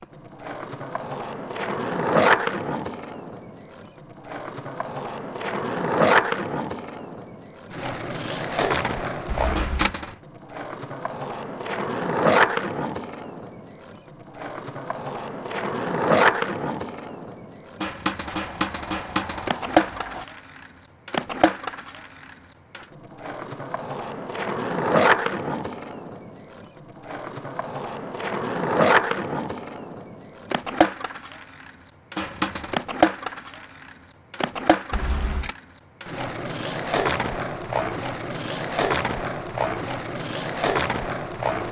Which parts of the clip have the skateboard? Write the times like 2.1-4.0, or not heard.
0.0-41.6.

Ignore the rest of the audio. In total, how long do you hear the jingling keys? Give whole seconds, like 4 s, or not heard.
3 s.